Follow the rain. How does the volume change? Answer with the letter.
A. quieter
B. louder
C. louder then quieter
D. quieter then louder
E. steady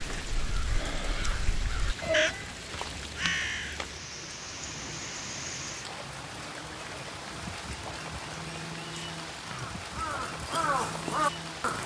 E.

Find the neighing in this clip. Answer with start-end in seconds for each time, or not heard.
2.0-3.0.